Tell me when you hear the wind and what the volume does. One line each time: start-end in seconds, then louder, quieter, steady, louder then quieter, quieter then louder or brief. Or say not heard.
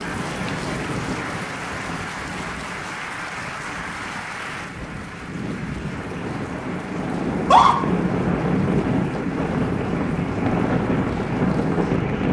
0.0-12.2 quieter then louder.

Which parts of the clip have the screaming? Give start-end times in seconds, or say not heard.
7.3-7.8.